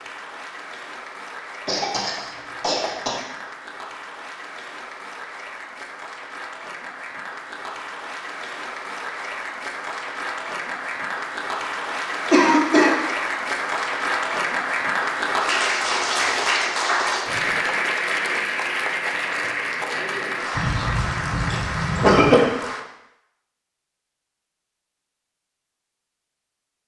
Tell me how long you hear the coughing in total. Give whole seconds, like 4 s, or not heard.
4 s.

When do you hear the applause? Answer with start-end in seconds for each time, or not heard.
0.0-22.9.